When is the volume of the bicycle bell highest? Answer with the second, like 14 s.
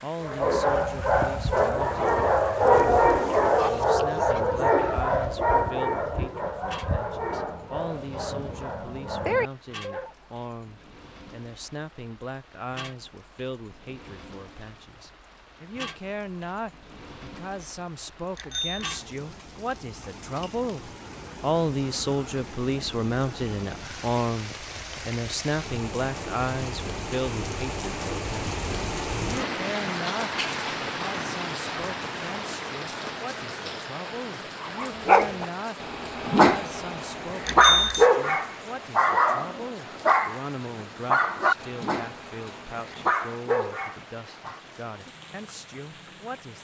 38 s.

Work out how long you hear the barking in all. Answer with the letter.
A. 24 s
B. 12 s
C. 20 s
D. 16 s
C.